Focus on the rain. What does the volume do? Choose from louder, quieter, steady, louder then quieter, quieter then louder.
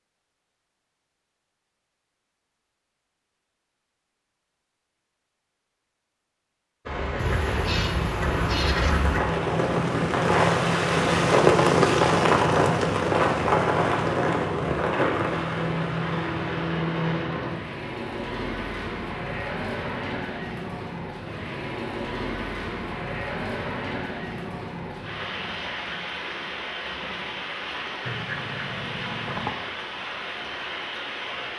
quieter.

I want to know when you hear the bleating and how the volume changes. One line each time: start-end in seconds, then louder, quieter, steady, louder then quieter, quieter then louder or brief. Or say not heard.
not heard.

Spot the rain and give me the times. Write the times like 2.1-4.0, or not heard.
6.8-31.5.